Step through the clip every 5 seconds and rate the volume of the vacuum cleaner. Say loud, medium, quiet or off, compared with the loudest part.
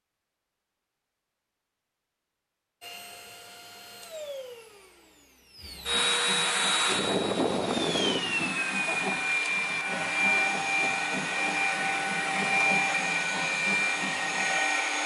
quiet, loud, loud.